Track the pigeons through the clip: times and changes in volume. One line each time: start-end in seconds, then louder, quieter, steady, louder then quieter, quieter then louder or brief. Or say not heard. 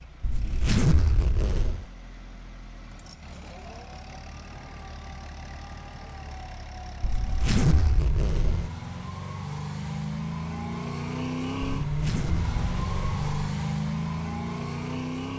not heard.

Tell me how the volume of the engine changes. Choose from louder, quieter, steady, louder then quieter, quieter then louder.
louder.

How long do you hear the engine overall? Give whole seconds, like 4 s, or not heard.
15 s.